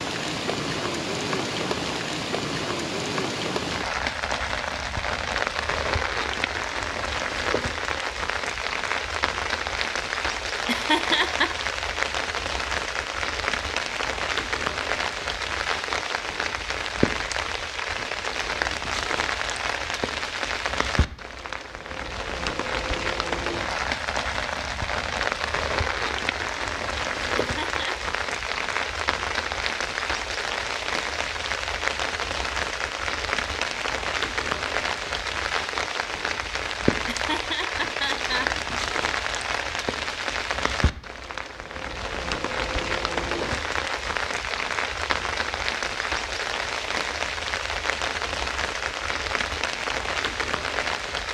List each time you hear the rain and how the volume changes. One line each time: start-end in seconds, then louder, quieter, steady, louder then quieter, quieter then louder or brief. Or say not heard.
0.0-51.2 steady.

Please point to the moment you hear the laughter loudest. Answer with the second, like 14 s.
11 s.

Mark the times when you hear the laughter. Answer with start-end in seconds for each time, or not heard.
10.6-11.6, 27.4-28.0, 37.0-38.6.